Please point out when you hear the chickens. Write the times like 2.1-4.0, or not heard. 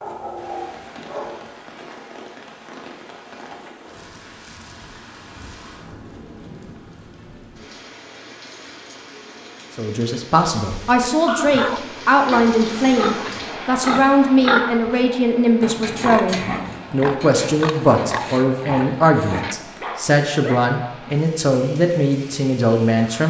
not heard.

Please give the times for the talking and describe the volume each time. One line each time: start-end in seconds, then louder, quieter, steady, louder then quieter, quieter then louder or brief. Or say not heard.
9.8-23.2 steady.